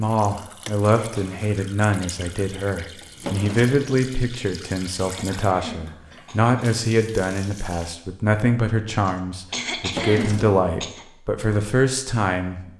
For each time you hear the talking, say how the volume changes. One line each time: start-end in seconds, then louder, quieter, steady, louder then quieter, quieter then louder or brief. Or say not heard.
0.0-12.7 steady.